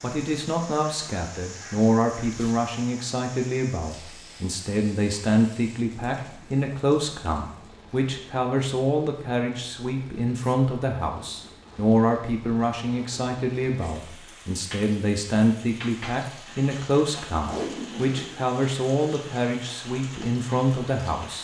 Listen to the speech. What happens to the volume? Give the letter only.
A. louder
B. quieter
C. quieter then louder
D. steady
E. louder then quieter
D.